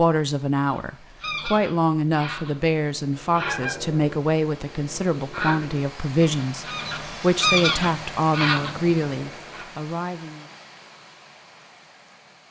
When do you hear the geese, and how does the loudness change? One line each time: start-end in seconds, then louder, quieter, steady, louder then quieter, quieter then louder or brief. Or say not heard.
0.7-9.7 louder.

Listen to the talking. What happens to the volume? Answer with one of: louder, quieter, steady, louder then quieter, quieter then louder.
steady.